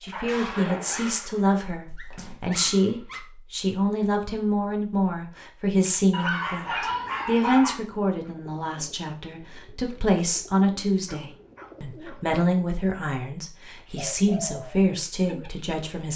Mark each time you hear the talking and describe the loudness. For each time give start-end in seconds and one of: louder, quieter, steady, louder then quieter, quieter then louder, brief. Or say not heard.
0.0-16.1 steady.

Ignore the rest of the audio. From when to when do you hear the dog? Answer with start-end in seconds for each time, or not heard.
0.2-3.2, 6.1-7.8, 11.1-12.2.